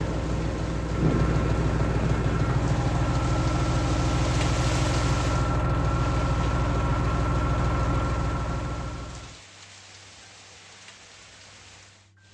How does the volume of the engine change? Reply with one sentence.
The volume of the engine stays about the same.